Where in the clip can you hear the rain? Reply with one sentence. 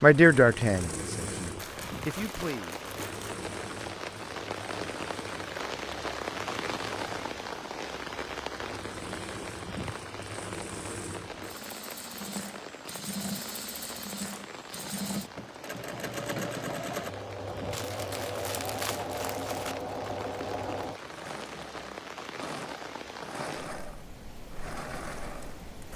The rain can be heard from 0.0 to 25.9 s.